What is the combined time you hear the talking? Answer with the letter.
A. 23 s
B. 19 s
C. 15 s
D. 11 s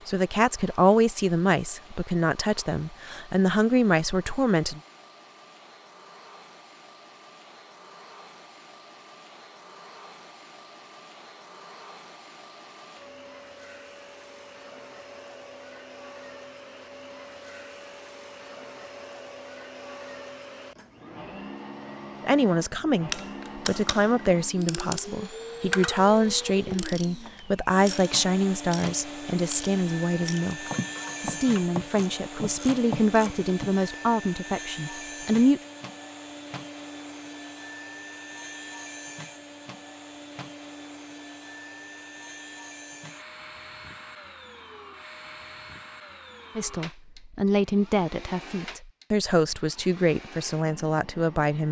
A.